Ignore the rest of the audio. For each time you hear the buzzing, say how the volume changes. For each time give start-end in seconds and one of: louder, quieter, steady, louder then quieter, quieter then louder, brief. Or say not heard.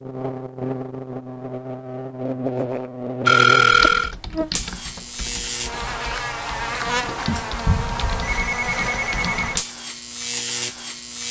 0.0-11.2 steady.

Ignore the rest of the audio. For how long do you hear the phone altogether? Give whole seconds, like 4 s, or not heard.
3 s.